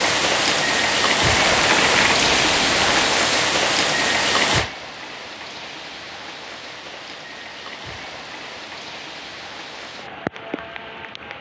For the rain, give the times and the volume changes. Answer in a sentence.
The rain can be heard from 0.0 to 11.3 s, getting quieter.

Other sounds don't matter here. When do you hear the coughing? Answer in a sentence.
The coughing can't be heard in this clip.